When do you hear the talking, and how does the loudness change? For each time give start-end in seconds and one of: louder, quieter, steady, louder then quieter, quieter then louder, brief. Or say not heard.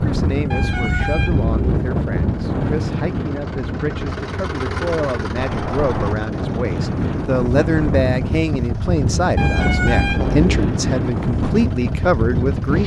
0.0-12.8 louder.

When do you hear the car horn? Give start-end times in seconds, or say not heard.
0.5-1.9, 5.3-6.2, 9.3-10.7.